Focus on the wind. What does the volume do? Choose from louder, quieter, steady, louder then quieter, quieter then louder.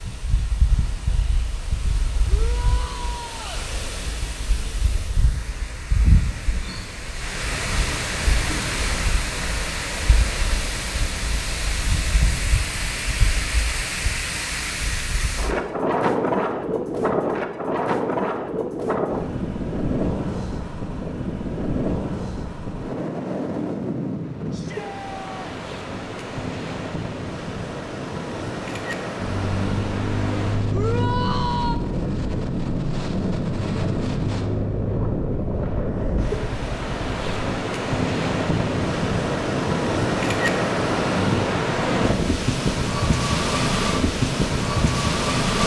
louder.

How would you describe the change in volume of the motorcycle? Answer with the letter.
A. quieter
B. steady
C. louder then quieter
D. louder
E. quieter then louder
A.